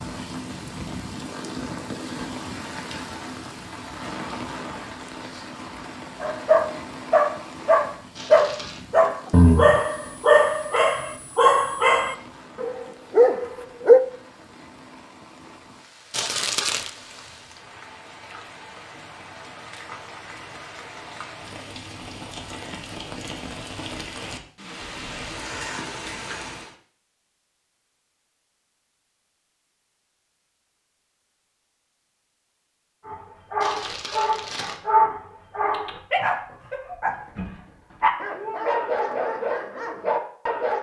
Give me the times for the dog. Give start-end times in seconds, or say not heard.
6.2-14.0, 33.0-40.7.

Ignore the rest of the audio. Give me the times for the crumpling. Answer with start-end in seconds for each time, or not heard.
8.2-8.8, 16.1-16.9, 33.6-34.8.